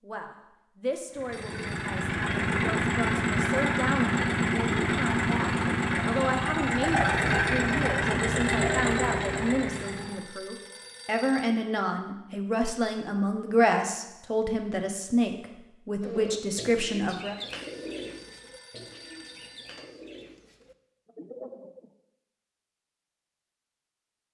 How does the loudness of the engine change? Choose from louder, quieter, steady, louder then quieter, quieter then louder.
steady.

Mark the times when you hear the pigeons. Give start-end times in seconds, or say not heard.
16.0-21.9.